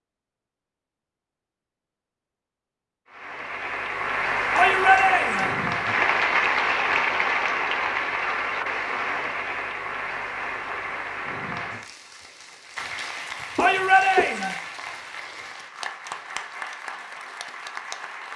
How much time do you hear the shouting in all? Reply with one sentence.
The shouting can be heard for 2 seconds in total.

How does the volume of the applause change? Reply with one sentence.
The loudness of the applause goes down.